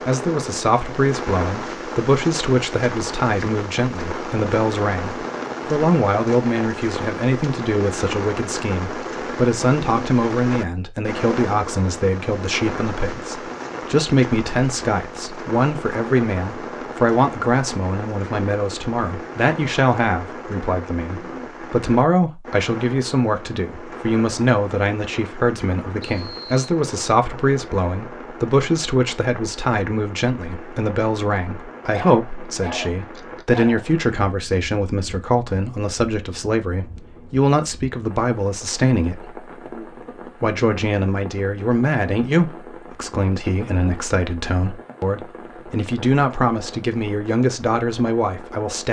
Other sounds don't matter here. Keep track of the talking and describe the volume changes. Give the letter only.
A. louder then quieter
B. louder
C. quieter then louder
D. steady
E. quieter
D.